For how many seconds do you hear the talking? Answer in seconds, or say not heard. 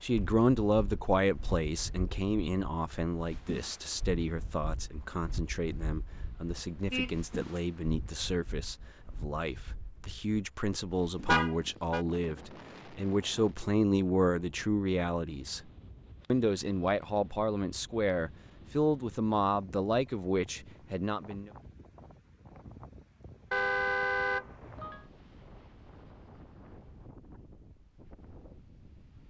21 s.